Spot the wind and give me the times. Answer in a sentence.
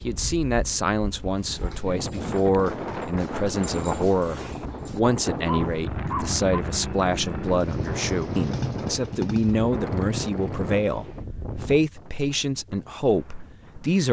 You can hear the wind from 0.0 to 14.0 s.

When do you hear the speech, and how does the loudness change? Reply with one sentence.
The speech can be heard from 0.0 to 14.0 s, at a steady volume.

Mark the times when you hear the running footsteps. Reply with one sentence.
The running footsteps can't be heard in this clip.